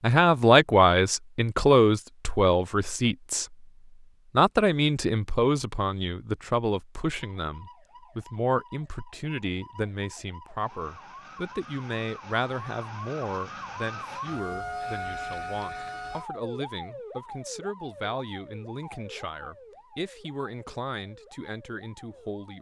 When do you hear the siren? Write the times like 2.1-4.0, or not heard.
7.4-22.5.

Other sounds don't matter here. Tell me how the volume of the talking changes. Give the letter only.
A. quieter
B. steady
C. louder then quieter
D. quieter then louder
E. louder
A.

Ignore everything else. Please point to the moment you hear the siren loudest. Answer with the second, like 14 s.
15 s.